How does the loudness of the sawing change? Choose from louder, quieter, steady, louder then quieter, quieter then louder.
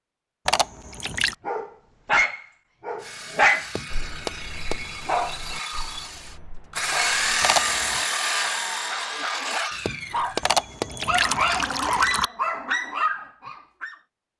louder then quieter.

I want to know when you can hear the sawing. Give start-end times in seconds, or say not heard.
3.0-10.8.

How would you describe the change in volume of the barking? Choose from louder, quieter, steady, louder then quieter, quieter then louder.
quieter then louder.